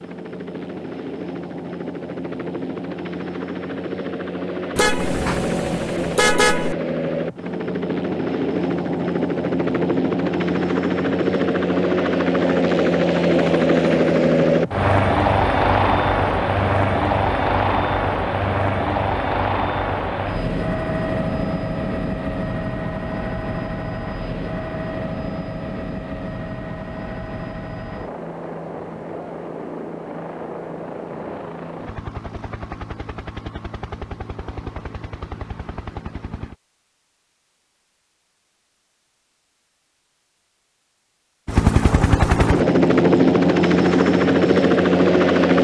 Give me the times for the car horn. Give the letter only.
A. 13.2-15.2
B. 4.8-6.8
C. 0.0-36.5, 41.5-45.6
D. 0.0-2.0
B.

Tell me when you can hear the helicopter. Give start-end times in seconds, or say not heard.
0.0-36.5, 41.5-45.6.